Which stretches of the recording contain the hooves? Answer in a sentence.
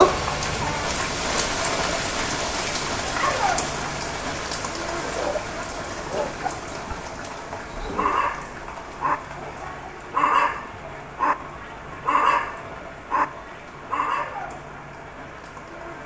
You can't hear the hooves here.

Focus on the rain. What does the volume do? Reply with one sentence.
The loudness of the rain goes down.